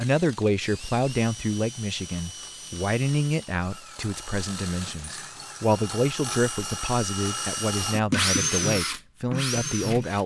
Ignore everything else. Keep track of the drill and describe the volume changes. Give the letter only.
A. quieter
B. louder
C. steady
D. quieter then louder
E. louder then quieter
B.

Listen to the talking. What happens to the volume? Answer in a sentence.
The loudness of the talking stays about the same.